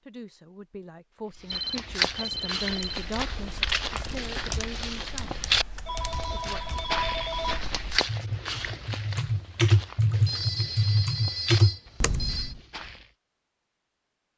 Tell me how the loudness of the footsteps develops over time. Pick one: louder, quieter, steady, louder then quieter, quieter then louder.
quieter.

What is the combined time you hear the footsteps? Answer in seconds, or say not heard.
12 s.